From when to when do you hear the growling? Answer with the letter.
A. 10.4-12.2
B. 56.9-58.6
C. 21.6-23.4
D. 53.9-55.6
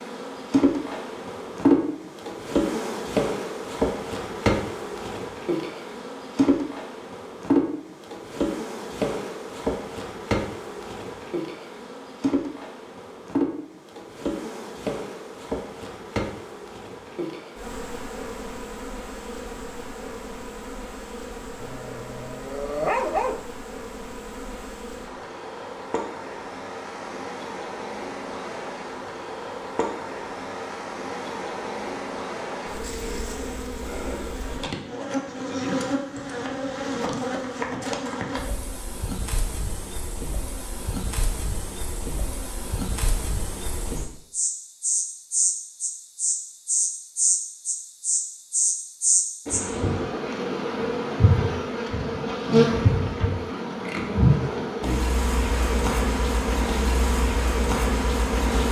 C.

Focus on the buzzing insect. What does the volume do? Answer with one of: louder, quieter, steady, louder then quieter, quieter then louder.
quieter then louder.